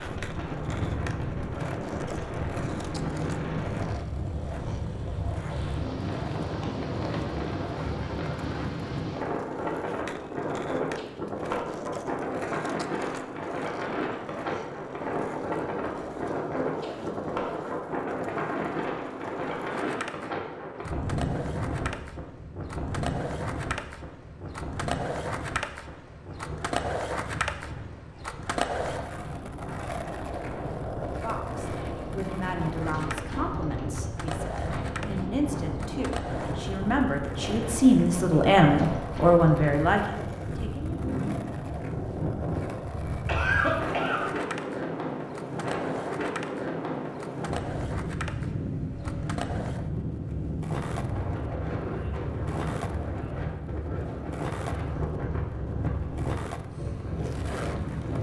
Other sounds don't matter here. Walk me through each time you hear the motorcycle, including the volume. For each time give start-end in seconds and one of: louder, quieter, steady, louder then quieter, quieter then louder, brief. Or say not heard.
not heard.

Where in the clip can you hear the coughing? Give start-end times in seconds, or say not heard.
43.2-44.2.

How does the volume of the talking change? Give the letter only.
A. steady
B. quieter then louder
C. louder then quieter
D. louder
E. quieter
D.